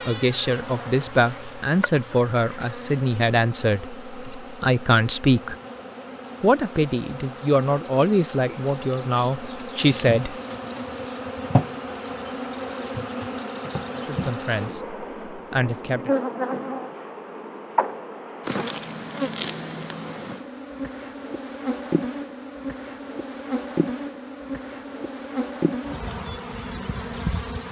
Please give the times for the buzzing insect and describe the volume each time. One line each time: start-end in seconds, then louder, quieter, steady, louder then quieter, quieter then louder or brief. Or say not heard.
0.0-27.6 louder.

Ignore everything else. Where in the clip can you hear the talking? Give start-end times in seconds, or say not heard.
0.1-5.5, 6.4-10.3, 13.9-16.1.